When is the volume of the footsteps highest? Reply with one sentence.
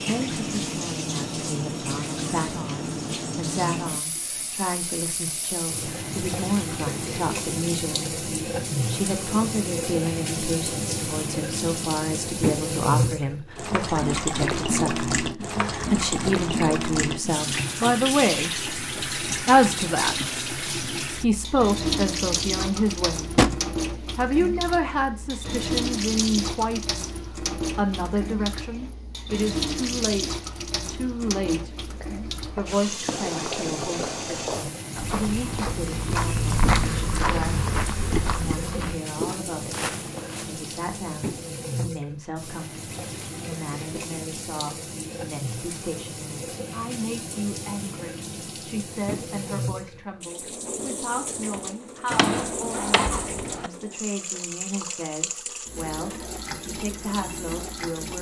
The loudest moment of the footsteps is at 37 seconds.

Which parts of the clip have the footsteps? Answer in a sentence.
You can hear the footsteps from 31.8 to 40.6 s.